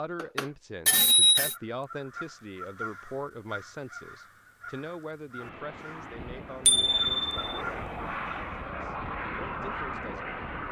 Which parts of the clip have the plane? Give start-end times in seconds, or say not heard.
5.4-10.6.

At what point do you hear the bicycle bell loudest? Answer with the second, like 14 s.
1 s.